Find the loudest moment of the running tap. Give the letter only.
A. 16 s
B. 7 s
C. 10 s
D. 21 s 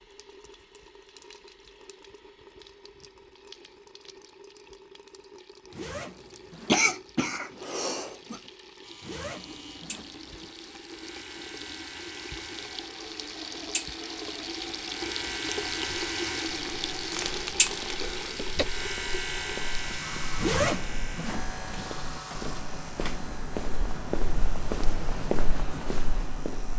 A.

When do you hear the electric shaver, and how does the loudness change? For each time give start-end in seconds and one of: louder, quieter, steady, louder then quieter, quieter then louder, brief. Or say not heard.
8.8-26.7 louder then quieter.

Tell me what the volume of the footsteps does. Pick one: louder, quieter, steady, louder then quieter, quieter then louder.
louder.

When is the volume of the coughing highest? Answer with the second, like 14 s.
7 s.